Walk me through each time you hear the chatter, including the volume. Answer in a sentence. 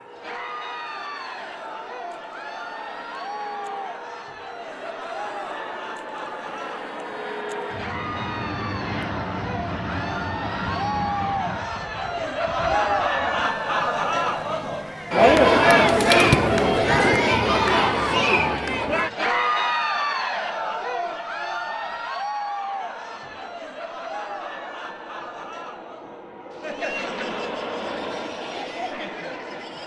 You can hear the chatter from 0.1 to 29.8 s, getting louder then quieter.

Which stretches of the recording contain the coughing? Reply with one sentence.
The coughing can't be heard in this clip.